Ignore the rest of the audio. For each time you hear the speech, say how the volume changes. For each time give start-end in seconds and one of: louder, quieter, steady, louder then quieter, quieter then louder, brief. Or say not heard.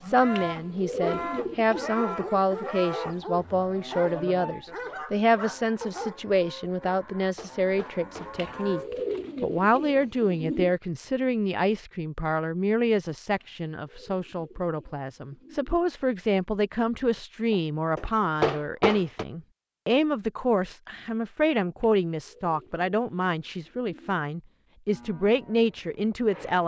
0.0-26.6 steady.